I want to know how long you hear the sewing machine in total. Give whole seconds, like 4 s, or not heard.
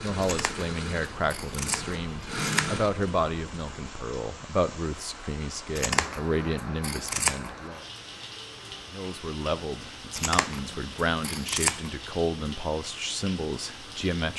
4 s.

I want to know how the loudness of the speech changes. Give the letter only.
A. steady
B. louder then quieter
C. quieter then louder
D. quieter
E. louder
A.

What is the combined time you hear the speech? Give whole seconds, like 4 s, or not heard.
13 s.